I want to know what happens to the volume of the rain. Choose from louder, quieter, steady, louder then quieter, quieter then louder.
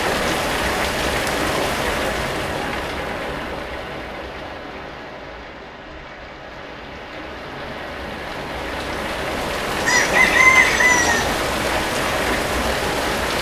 quieter then louder.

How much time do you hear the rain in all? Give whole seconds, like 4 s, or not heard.
13 s.